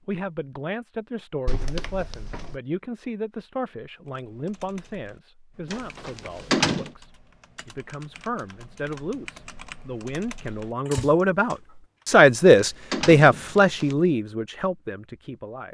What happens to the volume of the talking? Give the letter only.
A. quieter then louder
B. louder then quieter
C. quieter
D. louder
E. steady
D.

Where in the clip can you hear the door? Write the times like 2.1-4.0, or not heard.
1.4-2.6, 5.7-6.9, 12.1-13.9.